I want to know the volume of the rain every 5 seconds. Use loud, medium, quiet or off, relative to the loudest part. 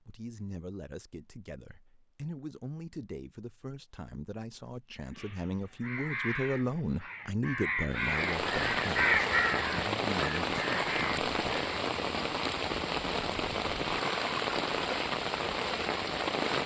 off, loud, loud, loud.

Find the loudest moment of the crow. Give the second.
9 s.